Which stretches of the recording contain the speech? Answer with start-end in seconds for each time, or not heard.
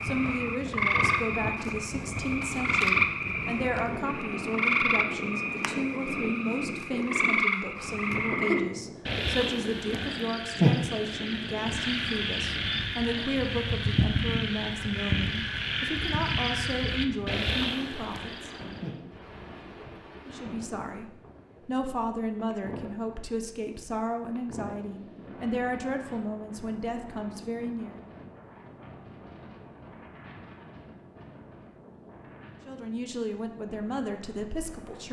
0.0-18.5, 20.2-28.0, 32.6-35.0.